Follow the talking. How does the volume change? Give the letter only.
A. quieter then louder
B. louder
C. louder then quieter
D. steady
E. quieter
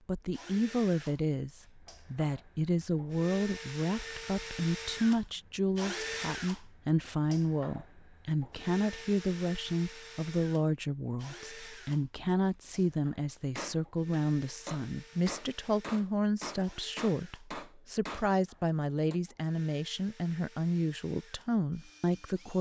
D.